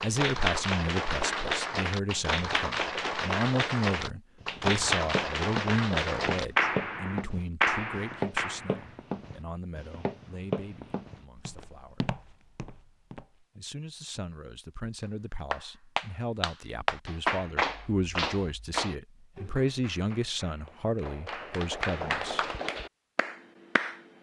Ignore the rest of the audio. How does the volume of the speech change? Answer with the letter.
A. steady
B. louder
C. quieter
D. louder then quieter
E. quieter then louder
E.